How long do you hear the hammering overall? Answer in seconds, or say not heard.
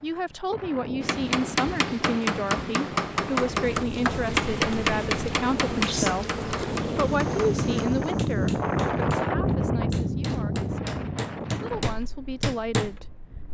12 s.